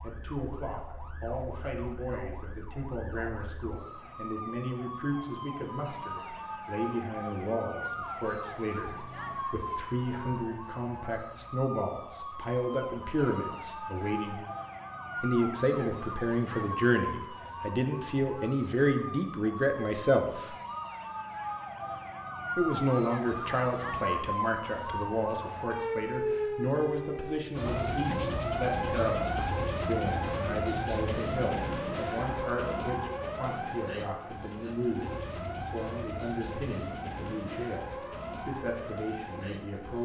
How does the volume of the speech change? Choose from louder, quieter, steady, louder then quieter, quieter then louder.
louder then quieter.